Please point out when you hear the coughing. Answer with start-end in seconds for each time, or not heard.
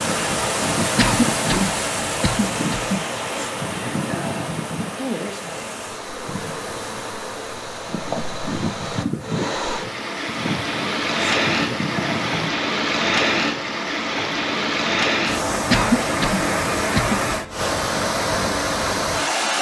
0.9-3.0, 15.7-17.2.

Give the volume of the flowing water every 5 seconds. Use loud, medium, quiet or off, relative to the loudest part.
loud, medium, loud, loud.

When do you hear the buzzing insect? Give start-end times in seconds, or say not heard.
0.0-12.5.